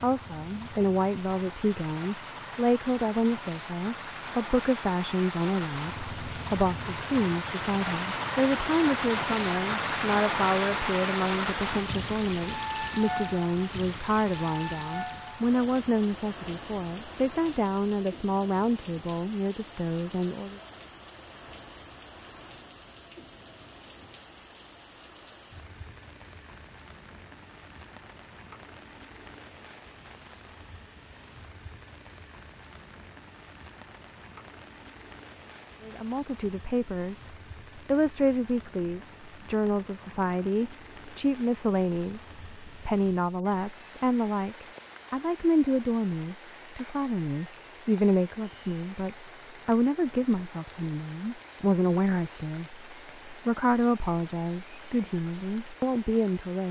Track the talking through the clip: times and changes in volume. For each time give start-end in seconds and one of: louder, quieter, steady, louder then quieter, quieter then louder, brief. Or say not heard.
0.0-20.6 steady
35.8-56.6 steady.